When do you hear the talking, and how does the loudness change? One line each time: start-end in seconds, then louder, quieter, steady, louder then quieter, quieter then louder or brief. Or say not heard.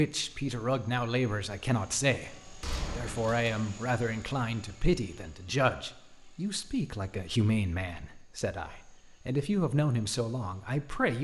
0.0-11.1 steady.